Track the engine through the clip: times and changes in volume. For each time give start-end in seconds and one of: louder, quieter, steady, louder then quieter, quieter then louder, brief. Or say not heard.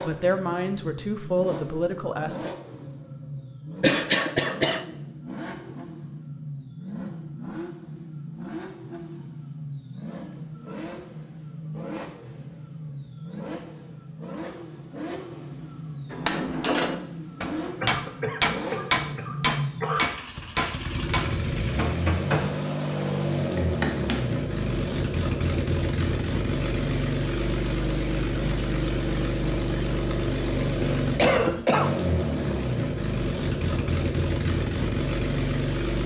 0.0-36.0 louder.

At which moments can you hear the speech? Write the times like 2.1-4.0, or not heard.
0.0-2.5.